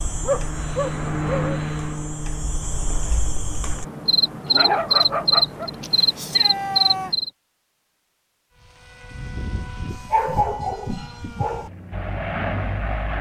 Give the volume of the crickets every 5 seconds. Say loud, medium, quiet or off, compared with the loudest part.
medium, loud, off.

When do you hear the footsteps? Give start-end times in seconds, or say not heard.
not heard.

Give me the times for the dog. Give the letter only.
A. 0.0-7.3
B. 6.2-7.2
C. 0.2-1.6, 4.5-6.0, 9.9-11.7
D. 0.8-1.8
C.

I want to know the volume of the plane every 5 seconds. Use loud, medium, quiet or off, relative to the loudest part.
loud, medium, loud.